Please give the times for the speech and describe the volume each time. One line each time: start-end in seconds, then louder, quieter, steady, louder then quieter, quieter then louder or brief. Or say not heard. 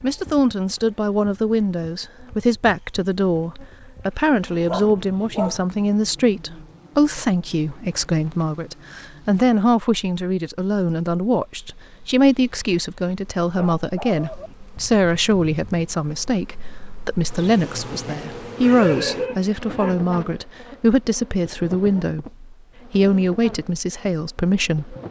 0.0-24.9 steady.